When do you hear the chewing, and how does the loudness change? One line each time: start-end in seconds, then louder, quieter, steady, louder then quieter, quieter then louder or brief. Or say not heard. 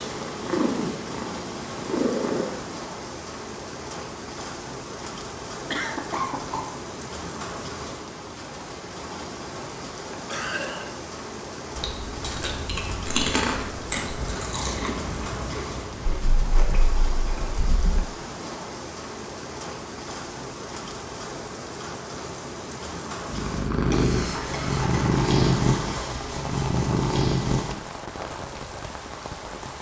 11.8-17.4 louder then quieter.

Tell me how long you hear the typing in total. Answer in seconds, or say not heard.
2 s.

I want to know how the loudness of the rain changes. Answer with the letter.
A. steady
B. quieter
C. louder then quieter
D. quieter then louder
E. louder
A.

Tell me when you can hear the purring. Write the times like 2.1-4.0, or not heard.
0.0-2.6, 23.2-27.8.